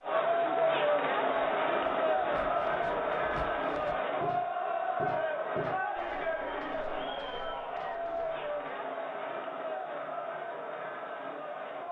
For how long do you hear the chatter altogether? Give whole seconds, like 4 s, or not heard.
12 s.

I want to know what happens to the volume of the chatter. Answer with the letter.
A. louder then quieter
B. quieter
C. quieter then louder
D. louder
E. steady
B.